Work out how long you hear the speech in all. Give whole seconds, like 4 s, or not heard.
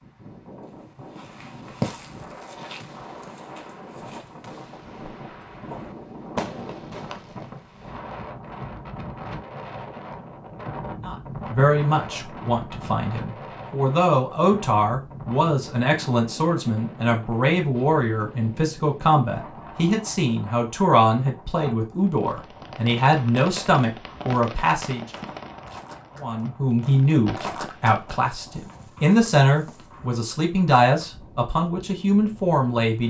21 s.